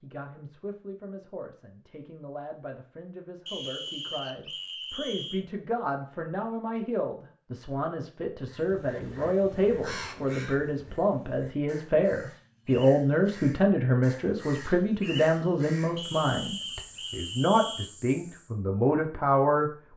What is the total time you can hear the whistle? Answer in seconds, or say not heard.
4 s.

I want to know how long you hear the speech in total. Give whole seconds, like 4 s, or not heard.
20 s.